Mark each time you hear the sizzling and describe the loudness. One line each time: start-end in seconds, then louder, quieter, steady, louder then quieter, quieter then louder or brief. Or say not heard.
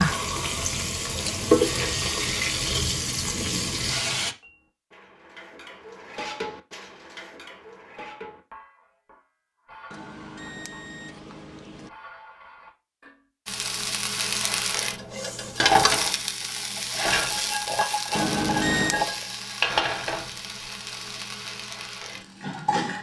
0.0-4.3 louder then quieter
13.4-22.9 louder then quieter.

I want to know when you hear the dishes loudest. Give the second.
6 s.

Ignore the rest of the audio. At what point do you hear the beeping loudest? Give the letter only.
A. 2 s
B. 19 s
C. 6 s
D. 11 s
B.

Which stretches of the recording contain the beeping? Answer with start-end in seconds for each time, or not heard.
1.1-3.2, 9.9-11.9, 18.1-19.1.